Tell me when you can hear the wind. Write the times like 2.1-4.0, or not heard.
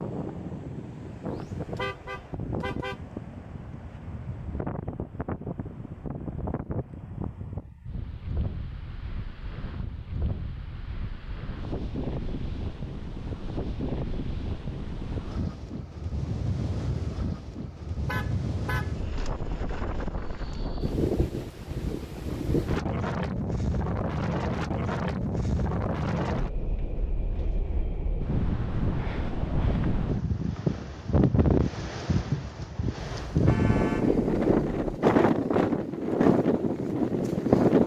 0.0-37.8.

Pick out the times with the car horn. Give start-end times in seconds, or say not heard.
1.2-3.0, 18.1-18.9, 33.0-35.0.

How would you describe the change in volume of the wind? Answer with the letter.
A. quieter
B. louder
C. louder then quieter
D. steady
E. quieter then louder
B.